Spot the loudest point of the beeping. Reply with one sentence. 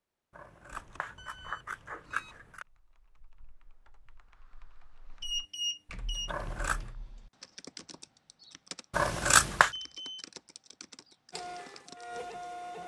The volume of the beeping peaks at 6 seconds.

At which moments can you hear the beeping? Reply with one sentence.
You can hear the beeping from 0.7 to 2.4 s, from 5.2 to 6.3 s and from 9.7 to 10.2 s.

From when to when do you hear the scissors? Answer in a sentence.
The scissors can be heard from 0.3 to 2.6 s, from 6.2 to 6.9 s and from 8.9 to 9.7 s.